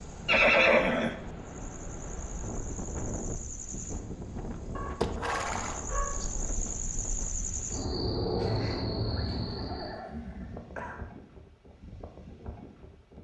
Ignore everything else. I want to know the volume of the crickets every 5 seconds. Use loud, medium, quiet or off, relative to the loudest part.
quiet, loud, off.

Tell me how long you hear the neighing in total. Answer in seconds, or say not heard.
4 s.